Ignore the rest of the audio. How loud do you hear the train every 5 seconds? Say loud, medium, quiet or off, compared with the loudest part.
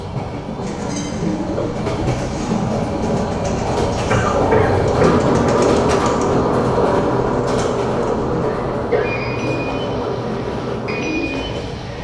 loud, loud, medium.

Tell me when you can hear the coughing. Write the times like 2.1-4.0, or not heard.
1.6-2.3, 4.1-5.6, 8.4-9.1.